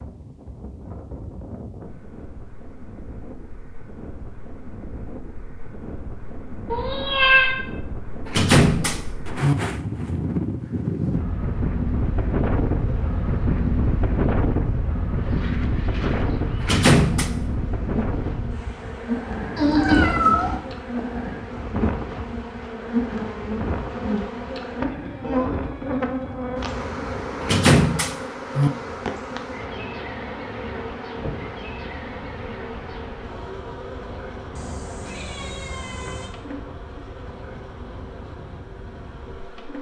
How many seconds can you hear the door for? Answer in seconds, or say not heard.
3 s.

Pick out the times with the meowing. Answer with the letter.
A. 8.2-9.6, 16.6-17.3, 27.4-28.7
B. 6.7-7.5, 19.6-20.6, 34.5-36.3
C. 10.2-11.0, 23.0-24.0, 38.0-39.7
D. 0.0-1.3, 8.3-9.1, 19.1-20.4
B.